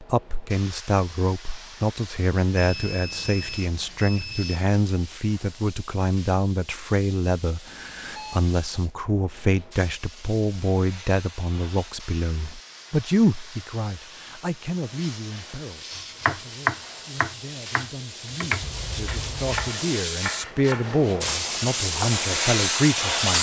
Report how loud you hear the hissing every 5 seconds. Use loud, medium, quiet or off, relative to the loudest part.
quiet, quiet, quiet, medium, loud.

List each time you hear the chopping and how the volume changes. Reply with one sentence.
The chopping can be heard from 15.9 to 22.2 s, getting quieter.